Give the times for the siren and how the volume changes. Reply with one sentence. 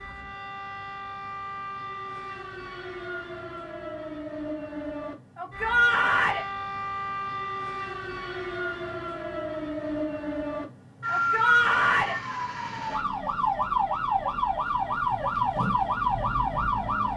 The siren can be heard from 0.0 to 17.1 s, getting louder.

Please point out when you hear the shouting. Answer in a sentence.
The shouting can be heard from 5.3 to 6.5 s and from 11.1 to 12.2 s.